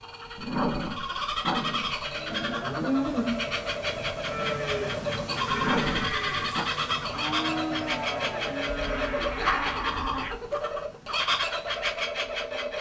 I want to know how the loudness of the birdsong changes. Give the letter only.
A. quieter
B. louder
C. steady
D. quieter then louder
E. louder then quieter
C.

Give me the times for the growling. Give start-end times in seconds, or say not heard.
0.3-2.6, 5.5-6.7, 8.8-10.4.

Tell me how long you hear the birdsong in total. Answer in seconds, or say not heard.
13 s.